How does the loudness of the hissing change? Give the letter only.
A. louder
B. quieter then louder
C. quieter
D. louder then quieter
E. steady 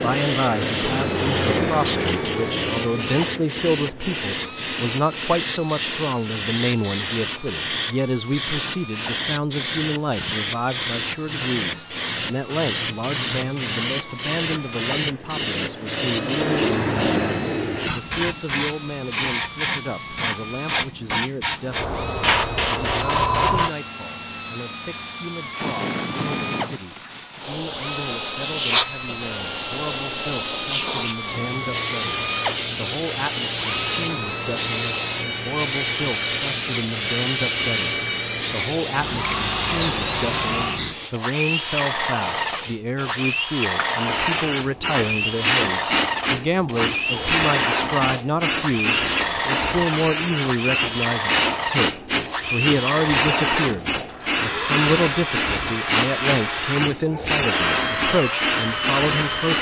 E.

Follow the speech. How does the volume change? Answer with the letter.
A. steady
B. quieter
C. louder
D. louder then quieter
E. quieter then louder
E.